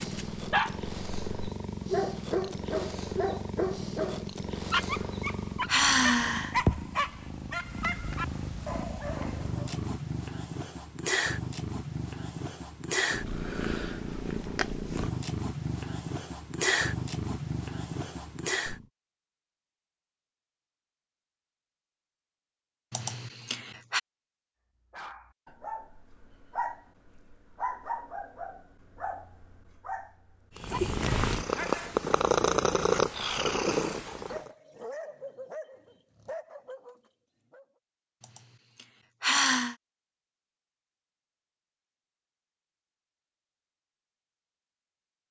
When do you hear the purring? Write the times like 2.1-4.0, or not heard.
0.0-18.9, 30.6-34.5.